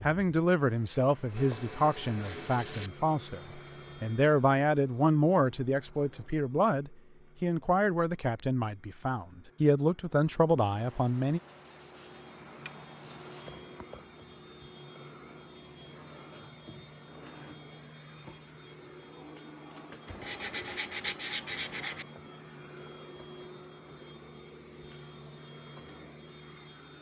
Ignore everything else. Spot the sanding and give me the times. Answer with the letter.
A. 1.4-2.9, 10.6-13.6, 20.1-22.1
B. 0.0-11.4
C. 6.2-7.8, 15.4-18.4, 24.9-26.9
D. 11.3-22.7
A.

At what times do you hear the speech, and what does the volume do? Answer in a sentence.
The speech can be heard from 0.0 to 11.4 s, at a steady volume.